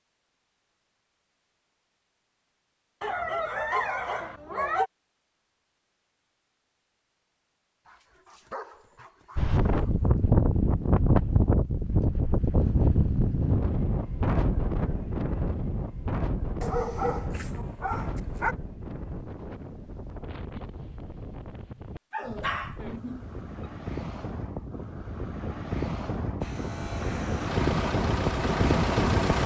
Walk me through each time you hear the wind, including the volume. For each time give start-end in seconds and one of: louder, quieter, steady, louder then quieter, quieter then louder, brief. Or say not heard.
9.3-29.4 quieter then louder.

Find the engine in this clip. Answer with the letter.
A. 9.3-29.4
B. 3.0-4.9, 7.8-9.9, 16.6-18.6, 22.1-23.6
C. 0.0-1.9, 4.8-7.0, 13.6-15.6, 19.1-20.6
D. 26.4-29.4
D.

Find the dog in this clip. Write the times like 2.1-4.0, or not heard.
3.0-4.9, 7.8-9.9, 16.6-18.6, 22.1-23.6.